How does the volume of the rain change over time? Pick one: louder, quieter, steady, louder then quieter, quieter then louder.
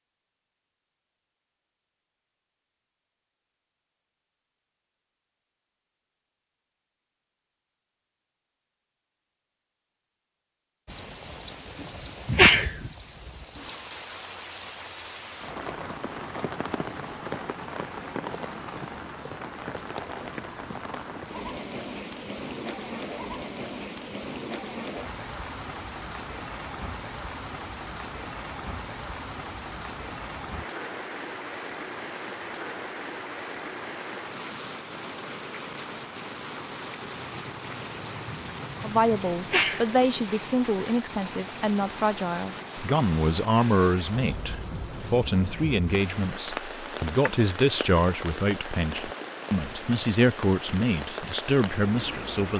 steady.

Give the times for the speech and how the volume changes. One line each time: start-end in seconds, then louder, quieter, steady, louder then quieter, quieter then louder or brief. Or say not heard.
38.8-52.5 steady.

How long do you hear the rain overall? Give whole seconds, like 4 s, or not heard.
42 s.